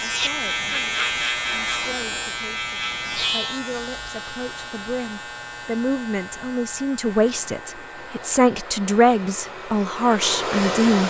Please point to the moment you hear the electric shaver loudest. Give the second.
1 s.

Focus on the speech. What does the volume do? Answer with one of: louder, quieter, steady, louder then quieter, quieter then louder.
louder.